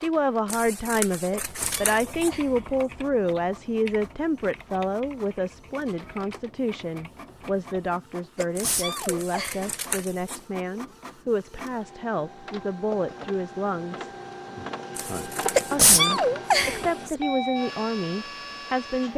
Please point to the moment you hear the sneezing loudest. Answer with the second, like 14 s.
16 s.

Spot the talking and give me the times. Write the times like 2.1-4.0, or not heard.
0.0-14.1, 15.7-19.1.